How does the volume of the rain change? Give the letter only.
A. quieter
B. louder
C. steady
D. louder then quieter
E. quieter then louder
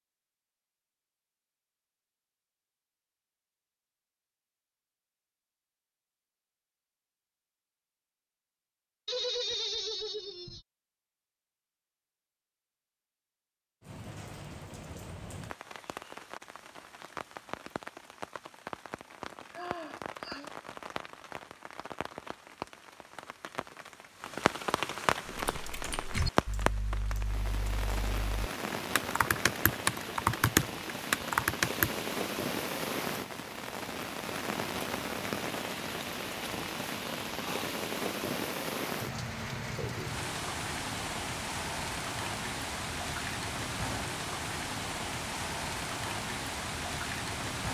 B.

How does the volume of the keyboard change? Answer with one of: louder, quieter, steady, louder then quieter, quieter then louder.
quieter then louder.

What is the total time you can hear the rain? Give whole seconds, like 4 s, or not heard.
34 s.